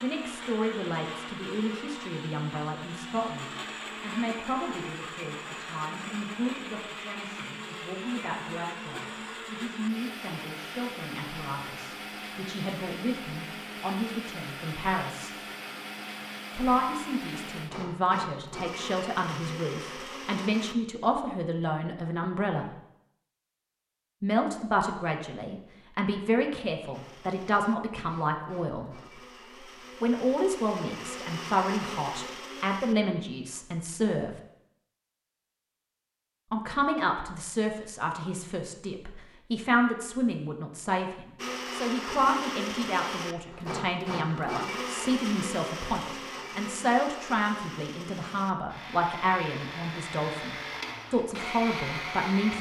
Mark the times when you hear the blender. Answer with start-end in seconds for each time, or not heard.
0.0-20.8, 26.9-33.0, 41.4-52.5.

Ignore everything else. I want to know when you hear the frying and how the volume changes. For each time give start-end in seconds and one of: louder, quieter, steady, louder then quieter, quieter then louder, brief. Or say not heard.
not heard.